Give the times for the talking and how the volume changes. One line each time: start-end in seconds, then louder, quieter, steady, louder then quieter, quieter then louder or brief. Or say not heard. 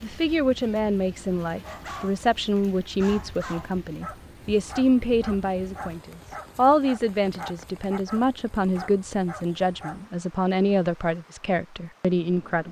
0.0-12.6 steady.